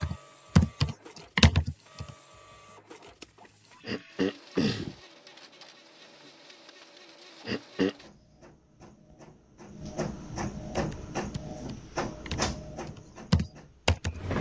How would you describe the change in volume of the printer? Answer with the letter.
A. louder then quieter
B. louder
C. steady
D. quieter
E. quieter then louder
B.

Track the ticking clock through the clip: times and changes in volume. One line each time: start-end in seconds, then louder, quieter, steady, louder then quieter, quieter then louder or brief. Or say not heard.
not heard.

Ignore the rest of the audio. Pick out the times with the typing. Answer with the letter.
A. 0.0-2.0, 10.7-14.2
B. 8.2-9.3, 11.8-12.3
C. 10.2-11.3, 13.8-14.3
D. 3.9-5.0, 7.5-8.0
A.